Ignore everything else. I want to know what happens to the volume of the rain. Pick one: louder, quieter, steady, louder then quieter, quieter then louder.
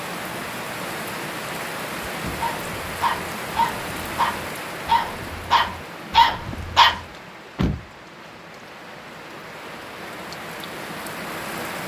quieter then louder.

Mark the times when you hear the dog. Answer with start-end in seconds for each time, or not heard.
2.4-7.0.